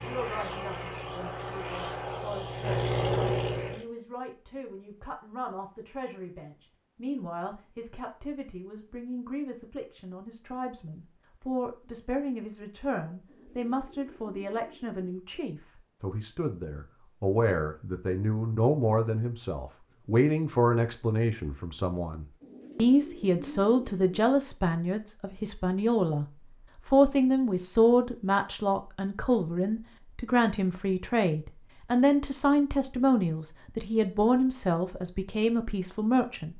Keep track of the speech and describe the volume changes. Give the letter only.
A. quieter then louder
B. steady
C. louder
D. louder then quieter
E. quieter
C.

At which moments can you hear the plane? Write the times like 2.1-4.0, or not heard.
0.0-3.9.